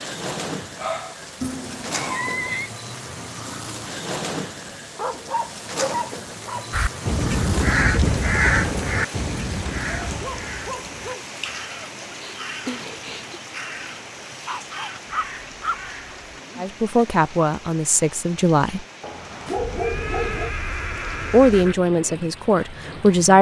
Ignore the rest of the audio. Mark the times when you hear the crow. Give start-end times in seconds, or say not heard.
6.7-16.2.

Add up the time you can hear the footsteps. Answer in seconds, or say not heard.
not heard.